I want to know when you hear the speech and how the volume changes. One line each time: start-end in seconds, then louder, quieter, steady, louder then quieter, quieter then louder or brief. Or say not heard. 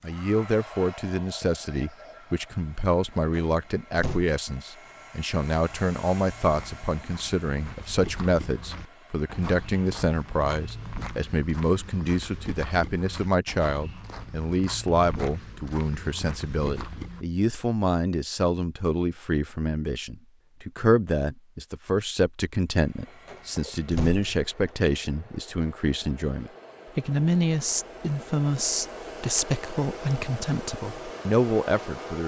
0.0-32.2 steady.